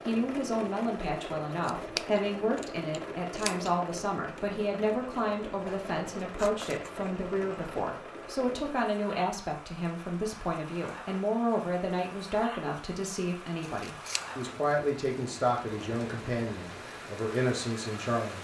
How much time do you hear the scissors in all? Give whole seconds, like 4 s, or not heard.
4 s.